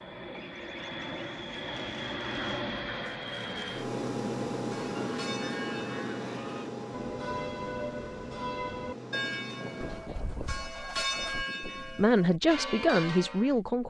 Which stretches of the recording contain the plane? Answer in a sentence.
You can hear the plane from 0.0 to 10.0 s.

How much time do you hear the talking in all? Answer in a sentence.
You can hear the talking for 2 seconds altogether.